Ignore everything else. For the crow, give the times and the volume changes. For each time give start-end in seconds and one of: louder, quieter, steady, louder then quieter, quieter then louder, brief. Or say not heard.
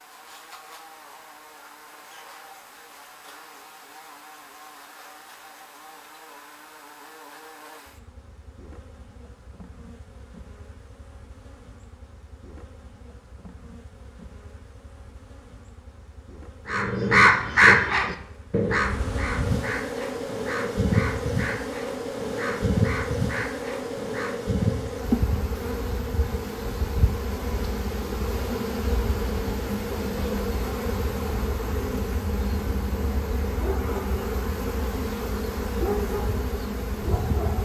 16.6-24.6 quieter.